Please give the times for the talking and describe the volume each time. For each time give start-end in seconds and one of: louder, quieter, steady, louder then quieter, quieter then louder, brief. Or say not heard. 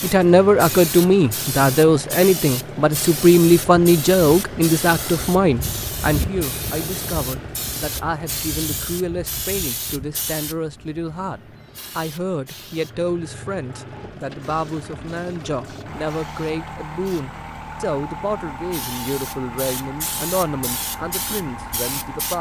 0.0-22.3 quieter.